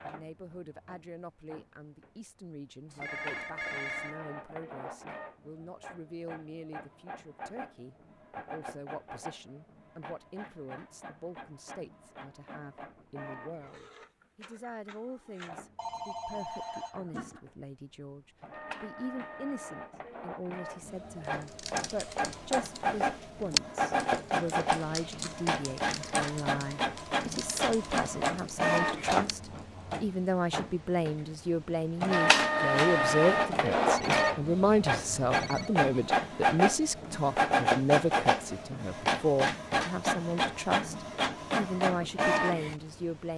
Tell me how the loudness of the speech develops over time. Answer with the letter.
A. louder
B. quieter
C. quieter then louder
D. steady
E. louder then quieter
A.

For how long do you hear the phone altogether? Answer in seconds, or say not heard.
5 s.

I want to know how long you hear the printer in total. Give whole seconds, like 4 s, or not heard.
43 s.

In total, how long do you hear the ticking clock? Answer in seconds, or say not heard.
not heard.